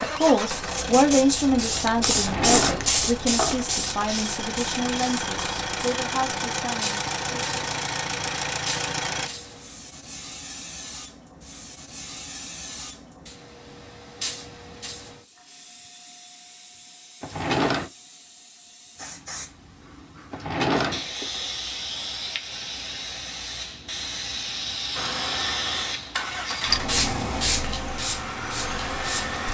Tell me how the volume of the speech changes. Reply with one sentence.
The volume of the speech goes down.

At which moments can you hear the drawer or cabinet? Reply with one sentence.
You can hear the drawer or cabinet from 2.1 to 3.6 s, from 17.2 to 17.9 s and from 20.3 to 21.5 s.